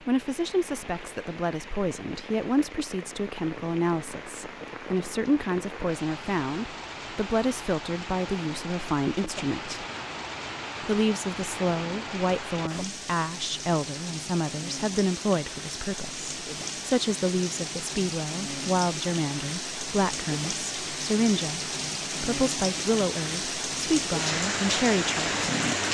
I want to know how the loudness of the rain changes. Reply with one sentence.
The volume of the rain goes up.